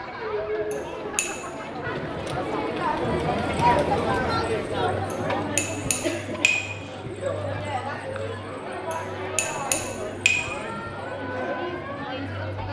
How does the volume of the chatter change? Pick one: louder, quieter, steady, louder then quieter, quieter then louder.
louder then quieter.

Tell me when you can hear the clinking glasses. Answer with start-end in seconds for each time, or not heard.
0.7-1.3, 5.1-6.6, 8.9-10.4.